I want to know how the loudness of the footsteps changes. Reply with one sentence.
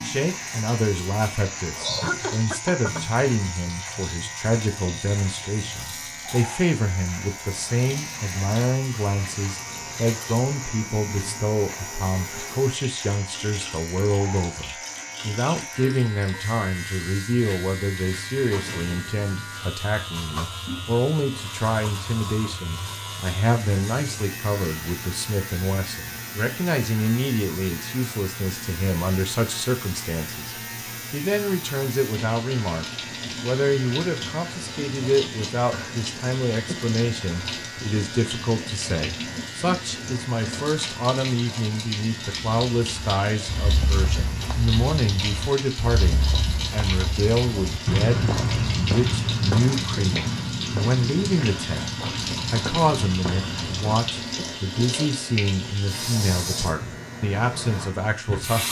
The volume of the footsteps goes up, then down.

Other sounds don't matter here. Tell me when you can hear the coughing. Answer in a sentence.
You can hear the coughing from 1.8 to 3.0 s.